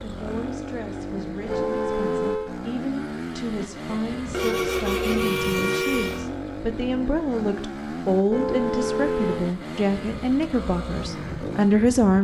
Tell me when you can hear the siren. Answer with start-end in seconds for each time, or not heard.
not heard.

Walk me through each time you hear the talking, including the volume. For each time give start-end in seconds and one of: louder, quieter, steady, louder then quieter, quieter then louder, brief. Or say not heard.
0.0-12.1 louder.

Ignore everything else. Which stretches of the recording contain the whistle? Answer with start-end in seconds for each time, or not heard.
not heard.